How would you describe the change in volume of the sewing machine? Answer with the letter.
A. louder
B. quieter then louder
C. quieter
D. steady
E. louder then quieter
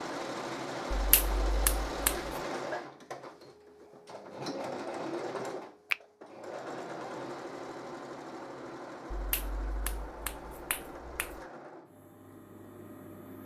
C.